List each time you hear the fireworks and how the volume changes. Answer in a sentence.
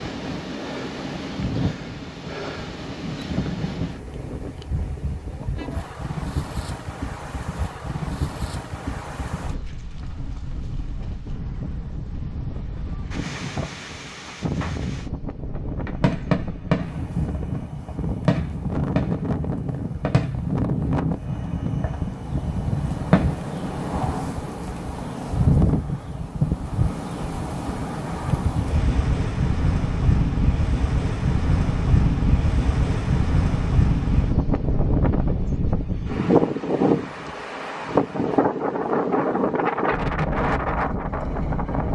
You can hear the fireworks from 15.8 to 23.3 s, getting quieter.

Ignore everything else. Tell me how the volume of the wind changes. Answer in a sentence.
The volume of the wind goes up.